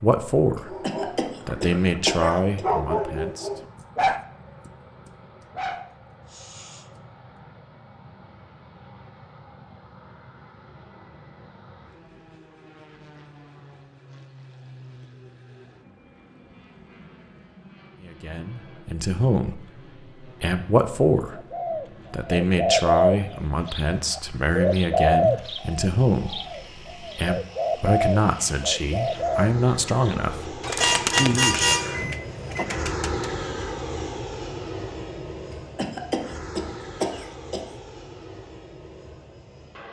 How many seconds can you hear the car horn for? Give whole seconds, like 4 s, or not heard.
2 s.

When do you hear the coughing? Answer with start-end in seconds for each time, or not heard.
0.8-2.6, 35.5-37.6.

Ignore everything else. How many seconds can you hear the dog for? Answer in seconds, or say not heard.
6 s.